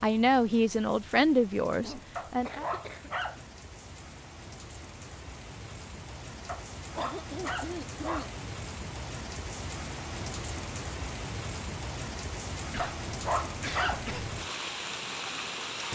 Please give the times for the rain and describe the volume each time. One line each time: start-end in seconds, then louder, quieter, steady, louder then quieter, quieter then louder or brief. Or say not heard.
0.0-15.8 louder.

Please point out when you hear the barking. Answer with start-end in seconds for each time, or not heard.
2.1-3.4, 6.5-8.3, 12.8-14.1.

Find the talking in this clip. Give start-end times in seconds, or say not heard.
0.0-2.6.